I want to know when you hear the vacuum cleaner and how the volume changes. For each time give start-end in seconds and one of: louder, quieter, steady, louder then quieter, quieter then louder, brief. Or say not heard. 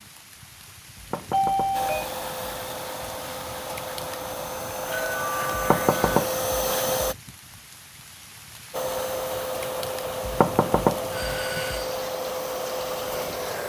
1.7-7.2 louder
8.7-13.6 steady.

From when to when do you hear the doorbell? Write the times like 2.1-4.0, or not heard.
1.3-2.0, 4.7-6.2, 11.1-12.0.